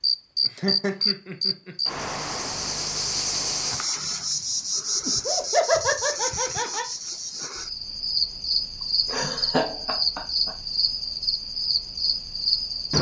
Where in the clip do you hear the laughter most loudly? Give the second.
6 s.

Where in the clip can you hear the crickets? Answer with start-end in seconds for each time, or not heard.
0.0-12.9.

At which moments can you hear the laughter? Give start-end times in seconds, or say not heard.
0.5-1.8, 5.0-6.8, 9.1-10.5.